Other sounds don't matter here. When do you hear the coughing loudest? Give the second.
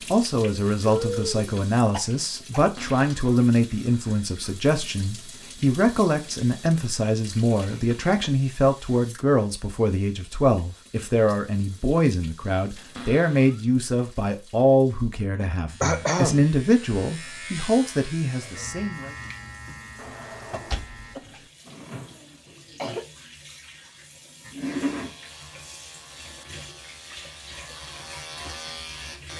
16 s.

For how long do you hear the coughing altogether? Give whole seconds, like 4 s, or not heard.
5 s.